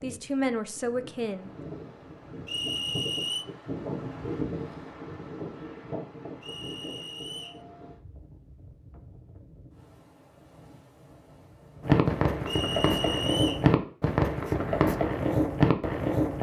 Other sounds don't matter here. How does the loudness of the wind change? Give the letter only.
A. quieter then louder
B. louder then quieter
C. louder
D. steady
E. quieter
B.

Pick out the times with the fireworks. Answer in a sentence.
You can hear the fireworks from 11.8 to 16.3 s.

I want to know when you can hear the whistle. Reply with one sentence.
The whistle can be heard from 2.5 to 3.5 s, from 6.4 to 7.6 s and from 12.4 to 13.7 s.